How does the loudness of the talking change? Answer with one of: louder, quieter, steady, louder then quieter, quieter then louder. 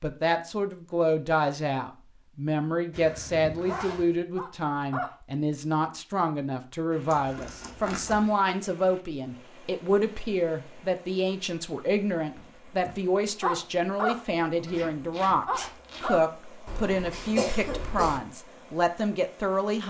steady.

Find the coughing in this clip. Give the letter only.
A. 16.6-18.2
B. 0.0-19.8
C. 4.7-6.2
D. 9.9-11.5
A.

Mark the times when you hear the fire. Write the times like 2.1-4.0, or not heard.
not heard.